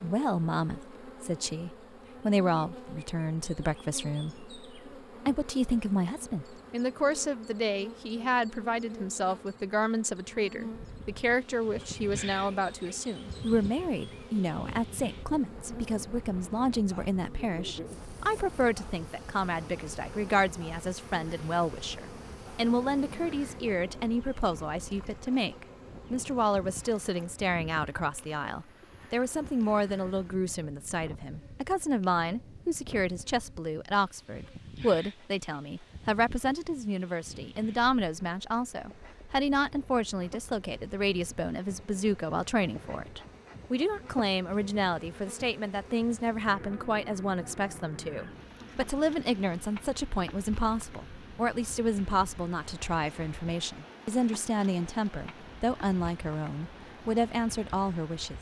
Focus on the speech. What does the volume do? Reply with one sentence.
The volume of the speech stays about the same.